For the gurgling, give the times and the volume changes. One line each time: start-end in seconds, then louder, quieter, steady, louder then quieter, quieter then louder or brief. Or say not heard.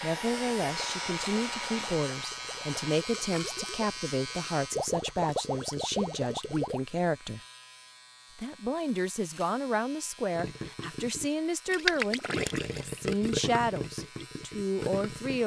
0.1-6.8 louder
10.3-15.4 louder then quieter.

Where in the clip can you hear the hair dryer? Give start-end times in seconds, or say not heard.
0.0-3.0.